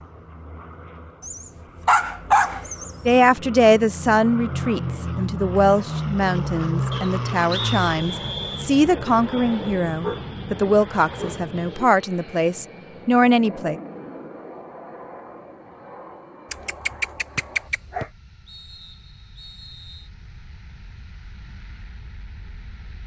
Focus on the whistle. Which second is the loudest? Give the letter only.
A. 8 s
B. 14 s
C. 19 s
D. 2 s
A.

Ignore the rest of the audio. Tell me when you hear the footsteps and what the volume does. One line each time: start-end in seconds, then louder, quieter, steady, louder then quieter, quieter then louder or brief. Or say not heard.
not heard.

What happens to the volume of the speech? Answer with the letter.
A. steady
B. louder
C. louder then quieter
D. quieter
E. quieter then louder
A.